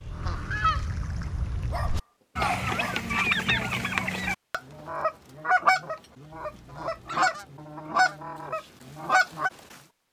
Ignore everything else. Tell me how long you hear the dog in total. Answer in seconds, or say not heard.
3 s.